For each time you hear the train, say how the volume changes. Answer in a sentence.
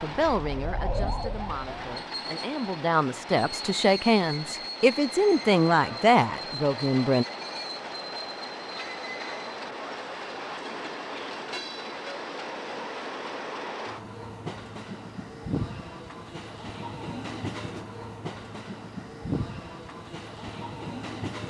The train can be heard from 0.0 to 21.4 s, at a steady volume.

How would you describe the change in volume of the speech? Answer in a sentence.
The volume of the speech goes up.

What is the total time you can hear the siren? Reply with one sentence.
The siren can be heard for 2 seconds in total.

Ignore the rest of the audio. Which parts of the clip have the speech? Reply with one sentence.
You can hear the speech from 0.0 to 7.2 s.